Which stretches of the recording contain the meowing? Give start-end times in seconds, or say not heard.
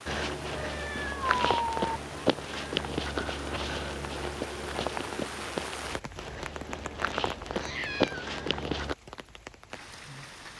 0.6-1.8, 7.5-8.3.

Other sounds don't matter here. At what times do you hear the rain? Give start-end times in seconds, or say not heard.
0.0-10.5.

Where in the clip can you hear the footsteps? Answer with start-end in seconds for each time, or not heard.
0.1-8.9.